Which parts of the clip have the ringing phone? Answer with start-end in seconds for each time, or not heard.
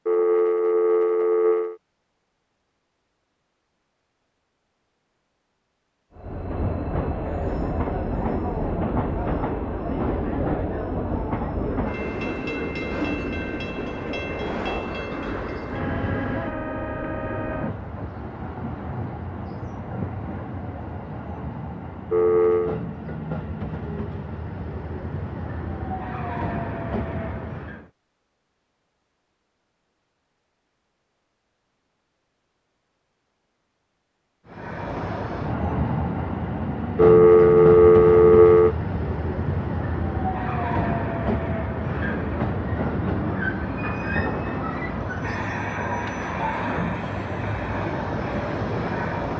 0.1-1.8, 22.1-22.8, 37.0-38.8.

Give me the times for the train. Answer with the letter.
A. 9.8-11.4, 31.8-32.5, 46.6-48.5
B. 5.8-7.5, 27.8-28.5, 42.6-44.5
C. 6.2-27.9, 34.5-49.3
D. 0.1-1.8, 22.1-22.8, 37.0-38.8
C.